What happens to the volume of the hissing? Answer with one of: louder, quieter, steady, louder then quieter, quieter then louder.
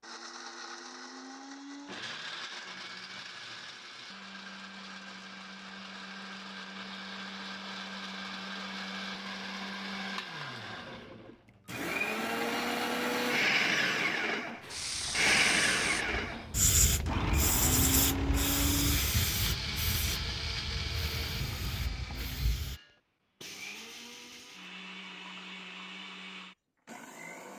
louder then quieter.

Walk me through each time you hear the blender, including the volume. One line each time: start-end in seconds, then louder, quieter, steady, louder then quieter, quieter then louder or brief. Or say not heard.
0.0-27.5 louder then quieter.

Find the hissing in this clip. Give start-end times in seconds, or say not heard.
14.6-22.8.